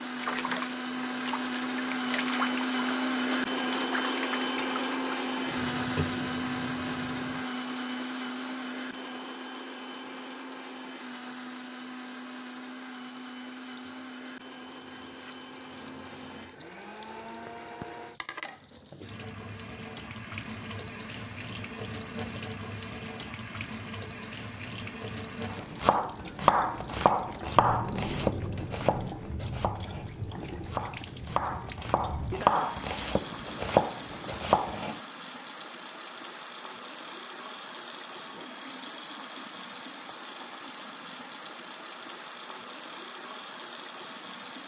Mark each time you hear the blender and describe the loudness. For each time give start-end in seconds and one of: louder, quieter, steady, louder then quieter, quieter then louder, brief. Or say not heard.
0.0-18.2 quieter.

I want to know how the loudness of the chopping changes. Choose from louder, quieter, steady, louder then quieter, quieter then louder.
quieter then louder.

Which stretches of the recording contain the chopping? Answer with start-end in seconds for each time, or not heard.
25.5-35.0.